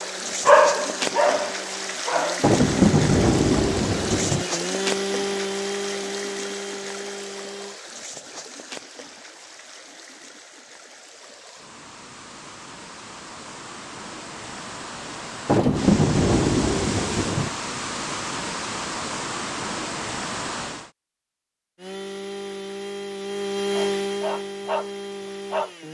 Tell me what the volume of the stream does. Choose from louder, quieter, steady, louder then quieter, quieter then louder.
quieter then louder.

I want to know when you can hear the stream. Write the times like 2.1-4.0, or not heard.
0.0-20.9.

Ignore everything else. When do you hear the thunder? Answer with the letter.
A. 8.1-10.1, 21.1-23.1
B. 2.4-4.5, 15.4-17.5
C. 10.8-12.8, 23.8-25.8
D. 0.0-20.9
B.